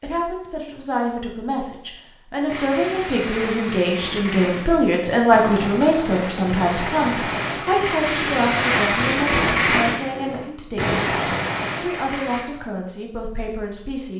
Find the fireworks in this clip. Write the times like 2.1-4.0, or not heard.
2.5-12.4.